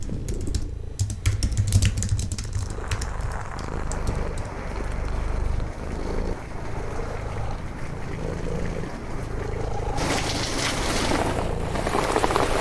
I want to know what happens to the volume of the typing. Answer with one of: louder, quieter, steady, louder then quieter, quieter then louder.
louder then quieter.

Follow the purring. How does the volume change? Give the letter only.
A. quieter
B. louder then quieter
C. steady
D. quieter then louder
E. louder
E.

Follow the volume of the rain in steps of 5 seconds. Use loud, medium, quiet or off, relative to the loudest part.
quiet, quiet, loud.